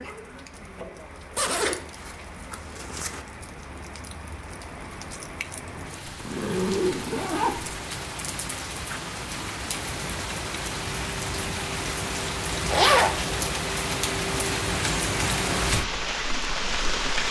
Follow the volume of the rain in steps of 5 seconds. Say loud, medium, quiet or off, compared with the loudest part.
quiet, medium, loud, loud.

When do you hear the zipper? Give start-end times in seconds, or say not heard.
1.4-3.2, 6.0-7.8, 12.7-13.2.